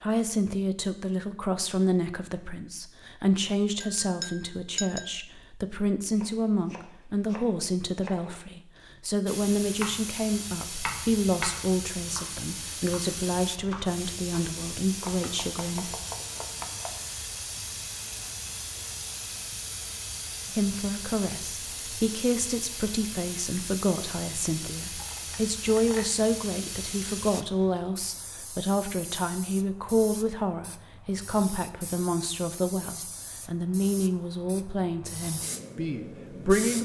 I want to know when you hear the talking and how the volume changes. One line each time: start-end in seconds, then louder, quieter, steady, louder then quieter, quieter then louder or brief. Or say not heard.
0.0-15.9 steady
20.5-36.8 steady.